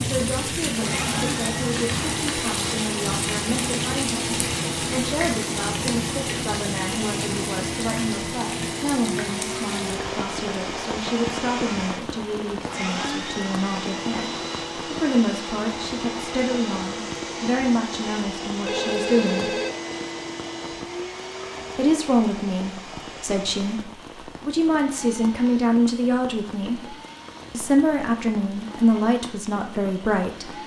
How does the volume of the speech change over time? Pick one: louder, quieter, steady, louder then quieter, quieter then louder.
louder.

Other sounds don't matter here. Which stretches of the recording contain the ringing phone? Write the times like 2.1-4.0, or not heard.
18.6-19.7.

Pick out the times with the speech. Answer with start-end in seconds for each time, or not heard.
0.0-19.6, 21.8-30.6.